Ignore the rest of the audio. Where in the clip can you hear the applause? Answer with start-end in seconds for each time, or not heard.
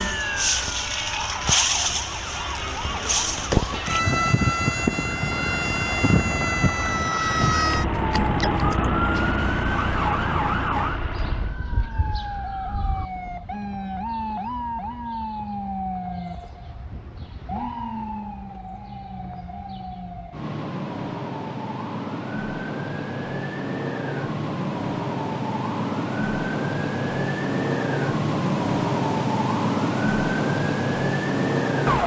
not heard.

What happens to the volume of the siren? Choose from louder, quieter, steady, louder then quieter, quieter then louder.
quieter then louder.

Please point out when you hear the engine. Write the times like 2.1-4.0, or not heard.
0.0-11.6.